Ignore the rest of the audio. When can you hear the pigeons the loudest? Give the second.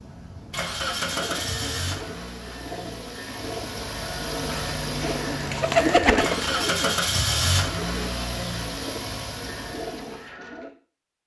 6 s.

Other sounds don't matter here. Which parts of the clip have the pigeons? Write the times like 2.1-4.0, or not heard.
0.9-10.7.